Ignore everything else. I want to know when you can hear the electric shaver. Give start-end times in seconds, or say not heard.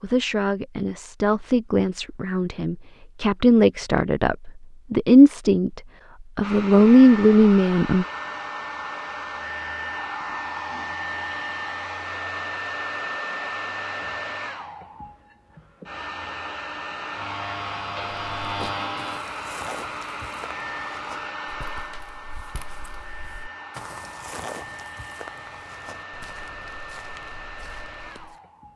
17.1-19.2.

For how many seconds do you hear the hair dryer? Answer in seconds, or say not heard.
22 s.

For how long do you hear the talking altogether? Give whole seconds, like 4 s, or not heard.
8 s.